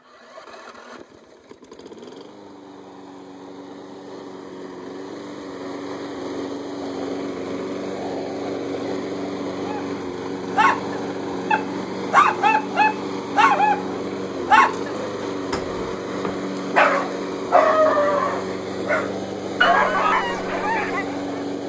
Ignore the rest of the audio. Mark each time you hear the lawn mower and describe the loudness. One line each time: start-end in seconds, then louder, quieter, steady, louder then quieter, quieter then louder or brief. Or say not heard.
0.0-21.6 louder.